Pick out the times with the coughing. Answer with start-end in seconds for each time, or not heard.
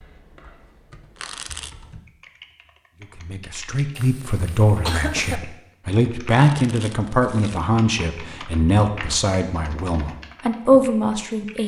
4.0-5.4.